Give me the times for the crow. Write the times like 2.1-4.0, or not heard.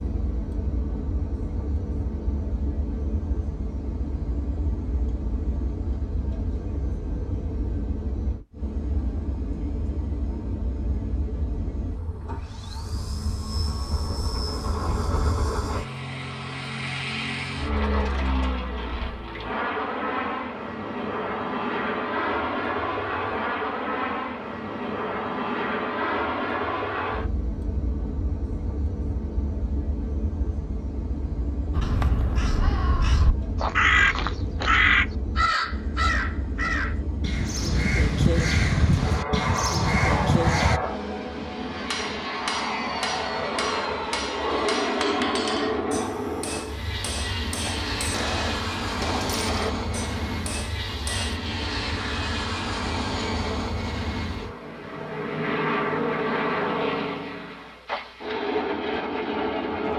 31.7-40.8.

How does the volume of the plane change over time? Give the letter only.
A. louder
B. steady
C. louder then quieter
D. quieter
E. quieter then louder
A.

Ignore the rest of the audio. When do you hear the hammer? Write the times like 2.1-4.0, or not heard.
41.7-51.4.